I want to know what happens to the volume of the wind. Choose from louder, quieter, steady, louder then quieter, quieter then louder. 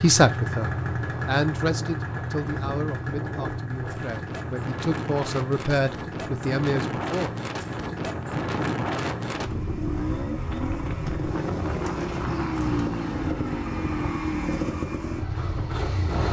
louder then quieter.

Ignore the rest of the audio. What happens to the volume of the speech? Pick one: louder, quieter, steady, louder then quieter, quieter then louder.
quieter then louder.